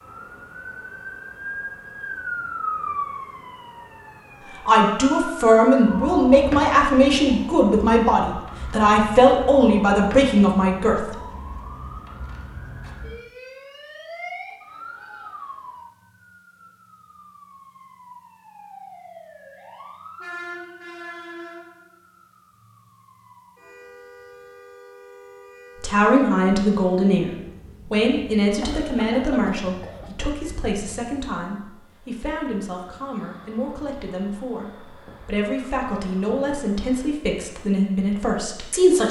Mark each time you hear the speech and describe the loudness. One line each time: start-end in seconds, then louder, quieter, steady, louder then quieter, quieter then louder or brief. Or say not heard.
4.7-11.1 steady
25.8-39.0 quieter then louder.